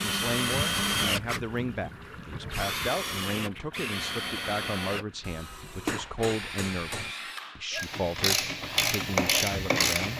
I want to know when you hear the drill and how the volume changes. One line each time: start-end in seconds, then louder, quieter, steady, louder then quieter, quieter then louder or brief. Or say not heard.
0.0-10.1 quieter.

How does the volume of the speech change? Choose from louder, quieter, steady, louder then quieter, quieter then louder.
steady.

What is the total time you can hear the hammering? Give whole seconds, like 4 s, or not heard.
2 s.